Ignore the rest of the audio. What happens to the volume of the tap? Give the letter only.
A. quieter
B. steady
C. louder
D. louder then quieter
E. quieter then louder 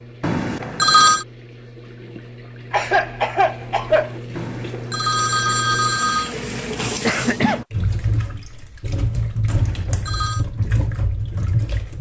C.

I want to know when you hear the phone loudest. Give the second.
1 s.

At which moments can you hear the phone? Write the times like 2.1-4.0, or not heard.
0.2-1.2, 4.3-6.3, 9.4-10.4.